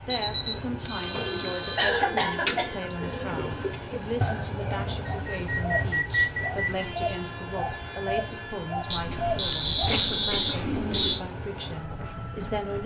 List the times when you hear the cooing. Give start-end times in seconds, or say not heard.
1.0-11.2.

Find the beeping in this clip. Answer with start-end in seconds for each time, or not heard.
0.1-1.9, 5.0-6.9, 8.9-11.2.